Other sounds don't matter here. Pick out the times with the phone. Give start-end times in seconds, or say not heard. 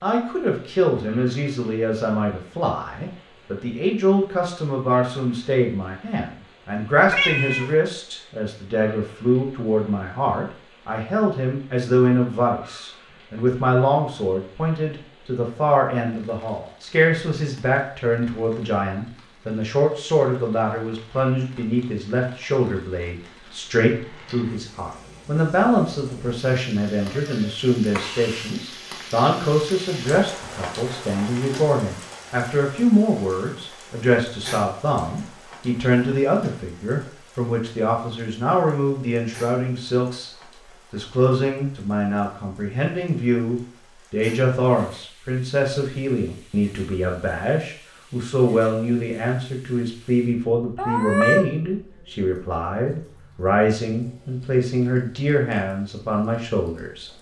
not heard.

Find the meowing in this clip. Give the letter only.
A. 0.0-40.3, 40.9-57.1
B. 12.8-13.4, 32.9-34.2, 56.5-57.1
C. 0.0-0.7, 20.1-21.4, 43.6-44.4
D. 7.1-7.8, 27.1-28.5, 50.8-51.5
D.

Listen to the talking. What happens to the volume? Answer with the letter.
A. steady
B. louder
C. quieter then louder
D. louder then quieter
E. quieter
A.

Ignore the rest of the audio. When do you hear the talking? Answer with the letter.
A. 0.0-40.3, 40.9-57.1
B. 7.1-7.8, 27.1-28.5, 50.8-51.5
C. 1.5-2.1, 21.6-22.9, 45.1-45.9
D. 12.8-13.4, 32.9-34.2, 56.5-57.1
A.